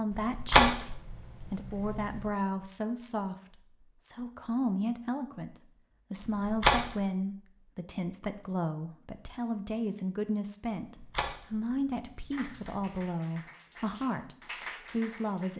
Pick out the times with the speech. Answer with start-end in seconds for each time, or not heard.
0.0-0.9, 1.5-15.5.